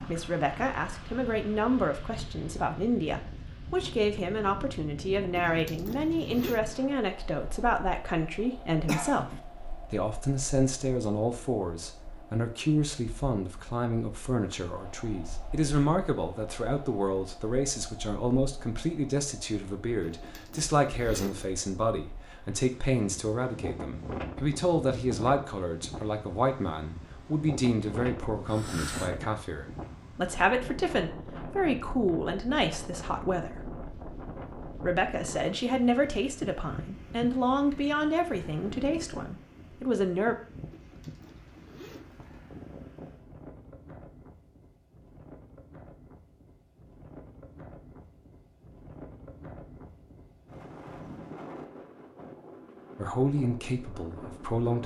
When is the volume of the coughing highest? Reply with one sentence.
The loudest moment of the coughing is at 9 seconds.